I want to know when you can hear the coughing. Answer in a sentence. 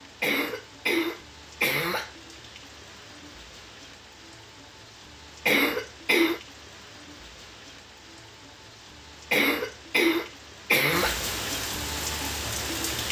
The coughing can be heard from 0.2 to 2.1 s, from 5.5 to 6.4 s and from 9.3 to 11.2 s.